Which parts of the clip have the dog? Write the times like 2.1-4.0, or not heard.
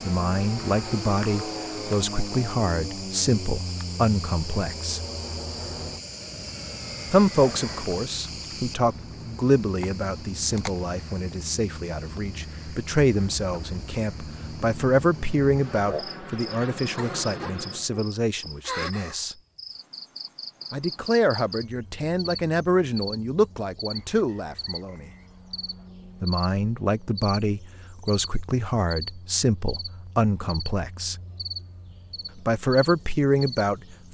not heard.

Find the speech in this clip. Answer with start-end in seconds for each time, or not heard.
0.1-5.0, 7.1-19.4, 20.7-25.1, 26.2-31.1, 32.4-34.0.